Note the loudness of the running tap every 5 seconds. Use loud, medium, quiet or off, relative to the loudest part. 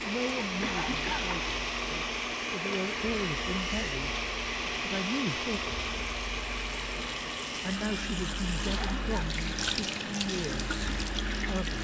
medium, loud, loud.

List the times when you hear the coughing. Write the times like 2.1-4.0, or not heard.
0.6-1.3, 8.7-9.3.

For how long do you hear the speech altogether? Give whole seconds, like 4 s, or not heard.
10 s.